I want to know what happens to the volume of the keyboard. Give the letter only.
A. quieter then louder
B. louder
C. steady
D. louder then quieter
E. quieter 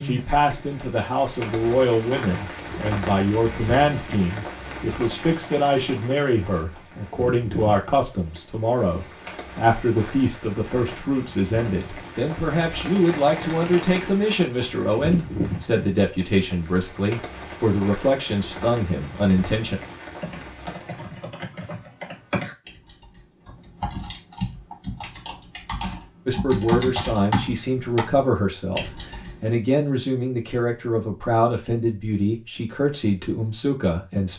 B.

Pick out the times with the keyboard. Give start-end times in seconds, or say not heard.
20.1-29.4.